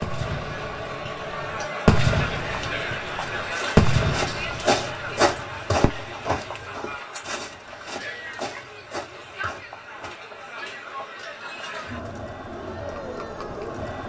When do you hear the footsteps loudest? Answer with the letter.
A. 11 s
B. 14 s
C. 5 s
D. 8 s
C.